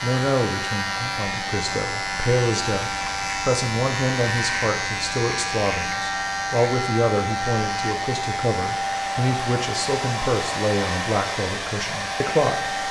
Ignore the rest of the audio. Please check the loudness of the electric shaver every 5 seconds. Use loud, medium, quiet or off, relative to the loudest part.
loud, loud, medium.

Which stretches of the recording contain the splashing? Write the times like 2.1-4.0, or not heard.
not heard.